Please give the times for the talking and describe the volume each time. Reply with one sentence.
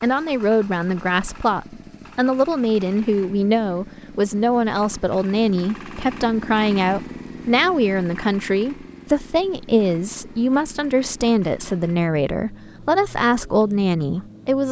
The talking can be heard from 0.0 to 14.6 s, at a steady volume.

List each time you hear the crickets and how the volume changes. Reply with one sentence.
The crickets can't be heard in this clip.